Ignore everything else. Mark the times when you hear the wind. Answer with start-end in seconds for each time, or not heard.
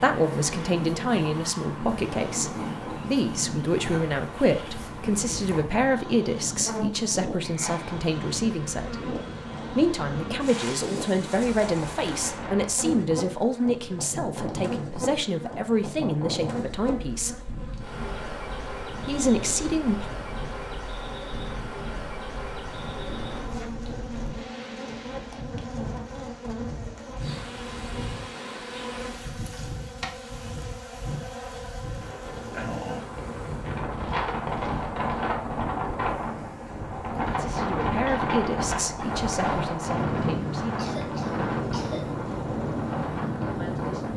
0.0-44.1.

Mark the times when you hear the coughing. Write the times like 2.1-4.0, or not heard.
40.8-42.2.